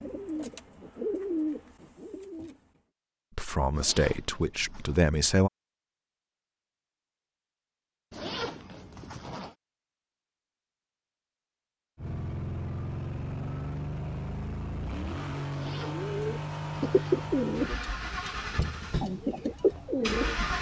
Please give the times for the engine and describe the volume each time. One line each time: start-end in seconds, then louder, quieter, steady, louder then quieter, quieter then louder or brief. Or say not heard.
11.9-20.5 steady.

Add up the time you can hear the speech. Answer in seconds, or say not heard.
2 s.